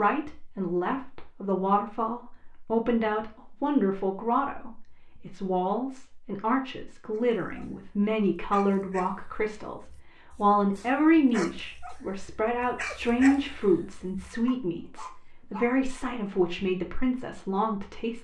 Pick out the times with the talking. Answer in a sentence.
The talking can be heard from 0.0 to 18.1 s.